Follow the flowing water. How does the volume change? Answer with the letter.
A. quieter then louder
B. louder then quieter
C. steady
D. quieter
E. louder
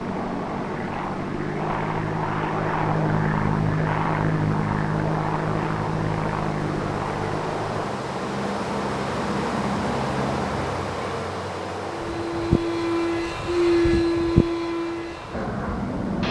B.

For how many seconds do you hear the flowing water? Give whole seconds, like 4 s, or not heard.
16 s.